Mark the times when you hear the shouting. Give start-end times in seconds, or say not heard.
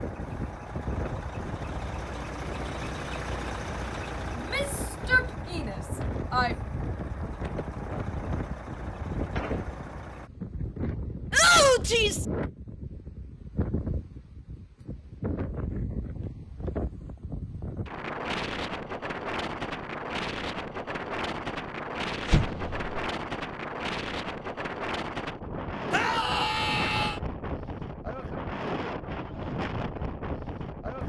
4.3-6.5, 11.3-12.2, 25.9-27.2.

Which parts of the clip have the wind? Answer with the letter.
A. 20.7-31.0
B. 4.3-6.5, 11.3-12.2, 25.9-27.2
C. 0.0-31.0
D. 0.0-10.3
C.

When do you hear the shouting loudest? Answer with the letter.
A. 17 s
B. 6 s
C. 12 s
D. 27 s
C.